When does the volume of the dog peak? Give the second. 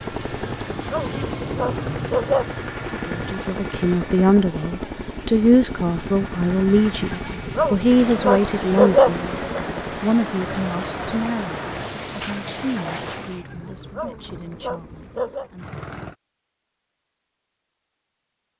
9 s.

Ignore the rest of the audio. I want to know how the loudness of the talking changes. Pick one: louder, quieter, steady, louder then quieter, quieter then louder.
quieter.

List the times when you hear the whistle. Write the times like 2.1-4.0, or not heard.
not heard.